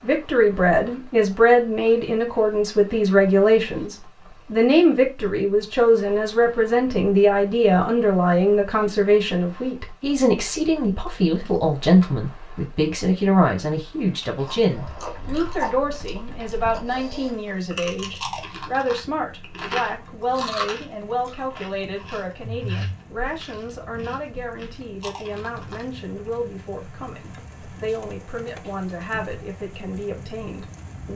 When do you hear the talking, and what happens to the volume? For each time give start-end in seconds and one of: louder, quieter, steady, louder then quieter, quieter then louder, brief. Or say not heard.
0.0-31.1 quieter.